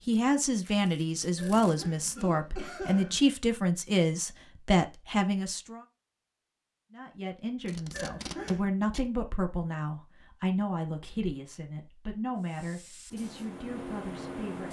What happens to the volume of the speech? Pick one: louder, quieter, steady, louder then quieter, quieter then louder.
quieter.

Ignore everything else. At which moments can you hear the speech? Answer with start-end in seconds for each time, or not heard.
0.1-5.8, 6.9-14.6.